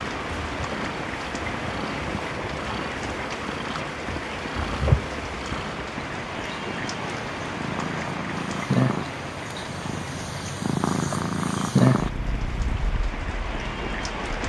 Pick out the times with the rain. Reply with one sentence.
You can hear the rain from 0.0 to 14.4 s.